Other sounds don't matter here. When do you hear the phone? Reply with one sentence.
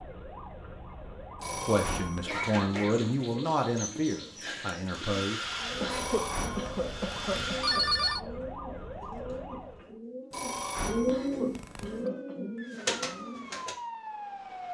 The phone can be heard from 1.4 to 2.4 s, from 5.9 to 8.2 s and from 10.3 to 12.0 s.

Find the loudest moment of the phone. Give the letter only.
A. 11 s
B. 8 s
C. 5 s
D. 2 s
B.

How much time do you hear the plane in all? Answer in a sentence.
The plane can be heard for 3 seconds in total.